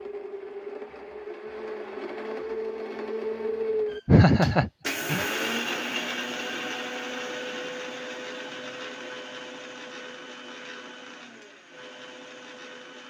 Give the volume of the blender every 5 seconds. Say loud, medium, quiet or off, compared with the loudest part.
loud, loud, medium.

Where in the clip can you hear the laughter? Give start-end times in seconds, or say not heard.
4.0-5.2.